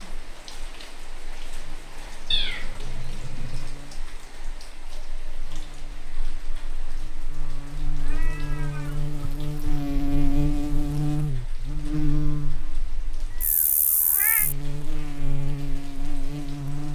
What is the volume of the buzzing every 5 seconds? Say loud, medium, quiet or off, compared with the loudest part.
quiet, medium, loud, loud.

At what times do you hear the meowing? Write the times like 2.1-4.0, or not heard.
2.3-3.7, 7.9-9.7, 13.3-14.5.